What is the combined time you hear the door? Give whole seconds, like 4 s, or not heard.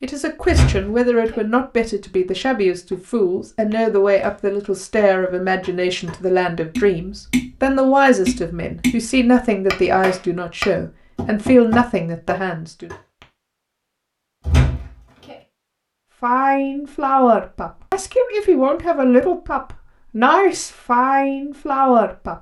2 s.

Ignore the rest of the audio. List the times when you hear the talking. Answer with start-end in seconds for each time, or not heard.
0.0-12.9, 16.2-22.3.